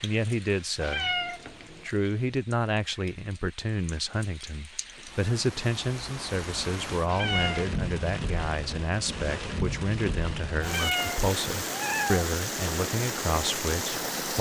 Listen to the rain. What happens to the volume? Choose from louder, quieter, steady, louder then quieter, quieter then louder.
louder.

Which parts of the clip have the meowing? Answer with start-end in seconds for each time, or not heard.
0.8-1.9, 7.0-7.8, 10.6-12.2.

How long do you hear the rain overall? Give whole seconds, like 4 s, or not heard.
14 s.